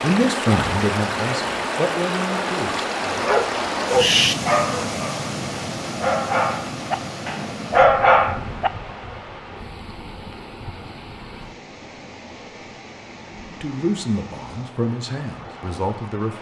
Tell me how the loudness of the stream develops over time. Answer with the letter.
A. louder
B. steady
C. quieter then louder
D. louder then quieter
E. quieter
E.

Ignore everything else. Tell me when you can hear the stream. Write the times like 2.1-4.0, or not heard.
0.0-16.3.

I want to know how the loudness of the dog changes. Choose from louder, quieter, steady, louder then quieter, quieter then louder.
quieter then louder.